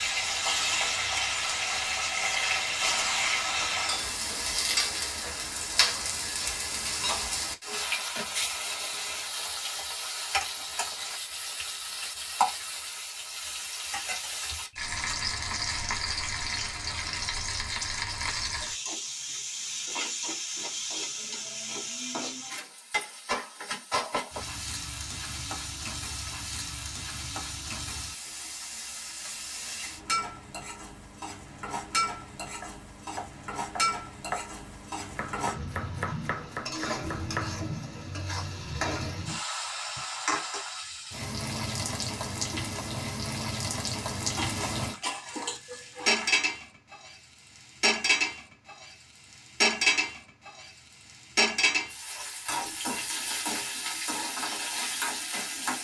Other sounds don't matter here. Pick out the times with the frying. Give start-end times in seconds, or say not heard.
0.0-55.8.